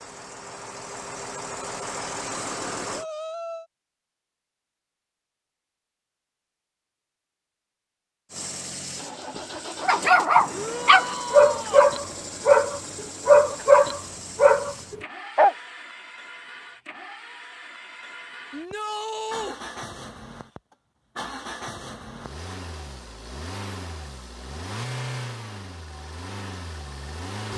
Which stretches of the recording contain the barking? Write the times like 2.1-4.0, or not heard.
9.8-15.6.